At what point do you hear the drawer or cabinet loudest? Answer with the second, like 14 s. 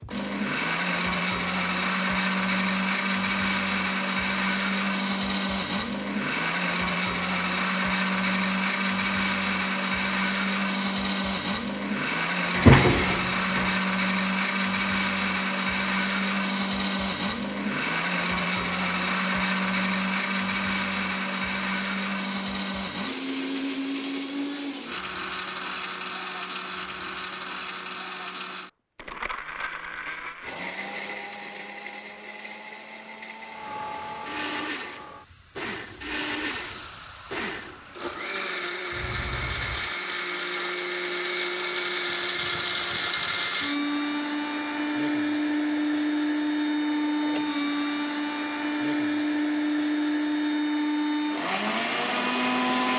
13 s.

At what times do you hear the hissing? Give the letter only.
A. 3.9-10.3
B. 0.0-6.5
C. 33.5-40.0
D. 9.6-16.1
C.